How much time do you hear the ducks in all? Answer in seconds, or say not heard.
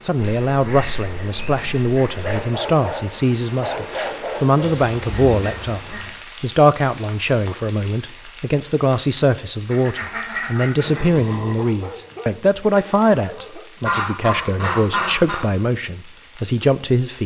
7 s.